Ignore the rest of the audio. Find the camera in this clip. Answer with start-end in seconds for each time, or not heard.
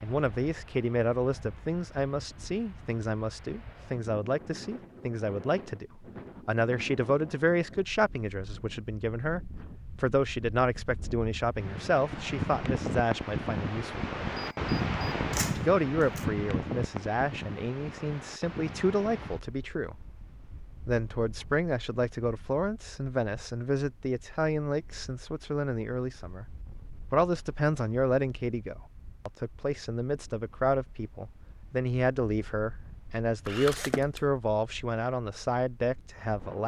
14.3-16.2, 33.5-34.2.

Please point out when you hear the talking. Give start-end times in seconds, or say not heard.
0.0-13.9, 15.6-19.9, 20.9-36.6.